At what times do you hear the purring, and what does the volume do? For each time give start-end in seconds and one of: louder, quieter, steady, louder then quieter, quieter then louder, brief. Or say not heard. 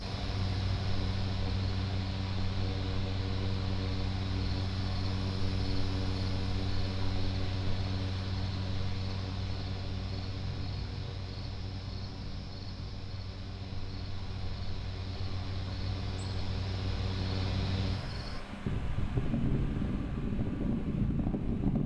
not heard.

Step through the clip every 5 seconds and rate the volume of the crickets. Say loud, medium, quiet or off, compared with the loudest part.
loud, loud, loud, loud, off.